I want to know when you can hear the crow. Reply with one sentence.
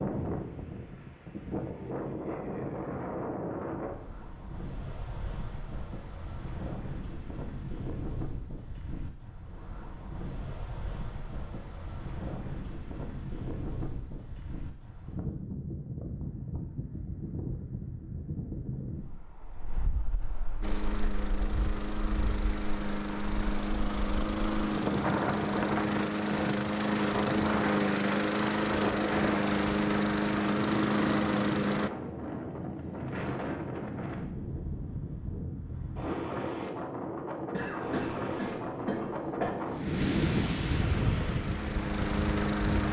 You can't hear the crow here.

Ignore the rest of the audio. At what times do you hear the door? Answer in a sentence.
The door can't be heard in this clip.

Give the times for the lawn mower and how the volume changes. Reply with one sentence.
The lawn mower can be heard from 20.6 to 31.9 s, getting louder; and briefly from 40.9 to 42.8 s.